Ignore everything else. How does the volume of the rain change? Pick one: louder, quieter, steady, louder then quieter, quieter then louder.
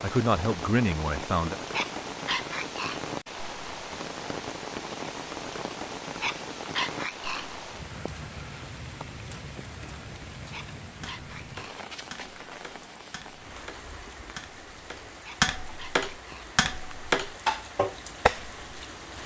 quieter.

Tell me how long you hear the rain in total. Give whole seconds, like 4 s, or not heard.
19 s.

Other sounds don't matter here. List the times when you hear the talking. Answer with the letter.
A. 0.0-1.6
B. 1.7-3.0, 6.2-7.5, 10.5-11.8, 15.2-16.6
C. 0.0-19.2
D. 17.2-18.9
A.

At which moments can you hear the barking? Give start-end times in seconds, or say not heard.
1.7-3.0, 6.2-7.5, 10.5-11.8, 15.2-16.6.